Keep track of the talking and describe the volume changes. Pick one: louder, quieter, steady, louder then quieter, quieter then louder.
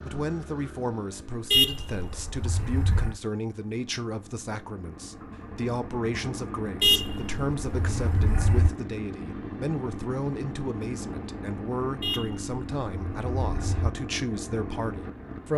steady.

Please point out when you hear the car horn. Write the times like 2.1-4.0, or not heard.
1.5-3.2, 6.8-8.7, 12.0-13.9.